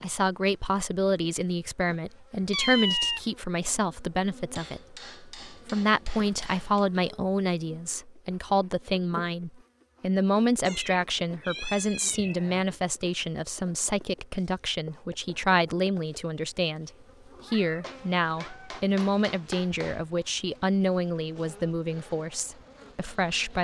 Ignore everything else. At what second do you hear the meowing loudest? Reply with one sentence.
The volume of the meowing peaks at 3 seconds.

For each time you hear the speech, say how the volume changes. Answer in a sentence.
The speech can be heard from 0.0 to 23.5 s, at a steady volume.